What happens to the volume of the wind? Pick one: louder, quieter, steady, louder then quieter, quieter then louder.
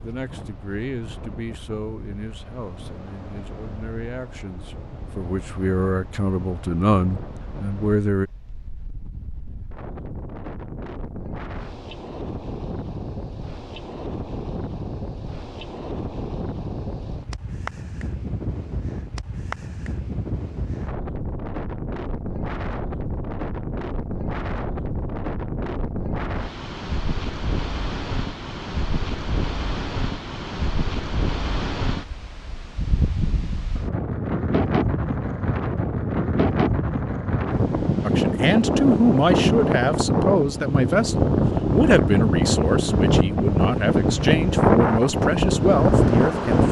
louder.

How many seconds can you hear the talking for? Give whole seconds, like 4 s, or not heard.
17 s.